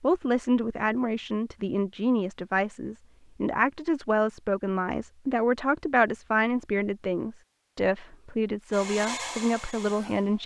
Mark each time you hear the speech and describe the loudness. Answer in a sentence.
You can hear the speech from 0.0 to 10.4 s, at a steady volume.